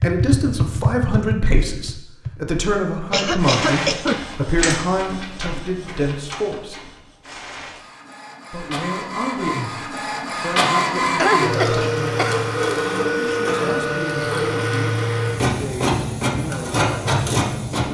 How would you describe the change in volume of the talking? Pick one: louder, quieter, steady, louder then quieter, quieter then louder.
quieter.